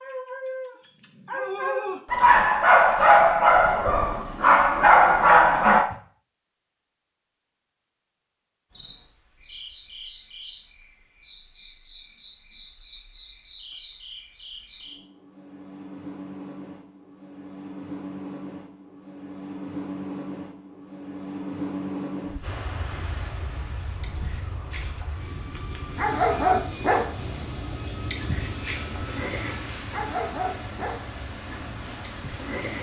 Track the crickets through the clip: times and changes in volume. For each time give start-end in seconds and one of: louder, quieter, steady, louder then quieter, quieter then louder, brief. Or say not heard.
8.7-32.7 louder.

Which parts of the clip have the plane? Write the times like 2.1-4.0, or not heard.
22.4-32.7.